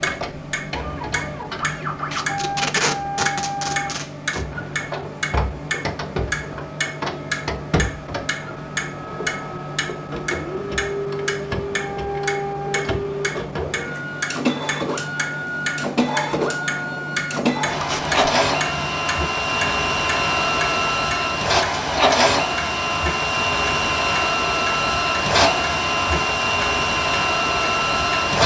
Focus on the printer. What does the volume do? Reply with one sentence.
The loudness of the printer goes up.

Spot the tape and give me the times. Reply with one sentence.
You can hear the tape from 2.1 to 4.4 s and from 17.8 to 18.3 s.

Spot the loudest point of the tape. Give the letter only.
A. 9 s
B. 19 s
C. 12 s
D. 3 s
D.